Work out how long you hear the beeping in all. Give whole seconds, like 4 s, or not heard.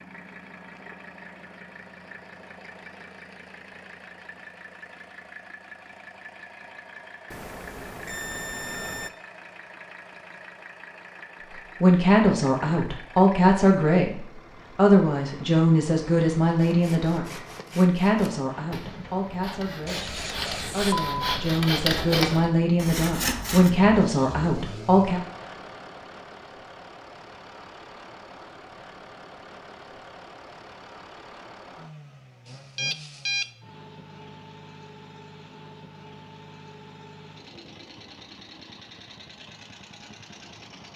4 s.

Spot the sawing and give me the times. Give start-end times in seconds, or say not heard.
16.5-23.7.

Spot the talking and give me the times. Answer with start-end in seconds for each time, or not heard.
11.8-25.2.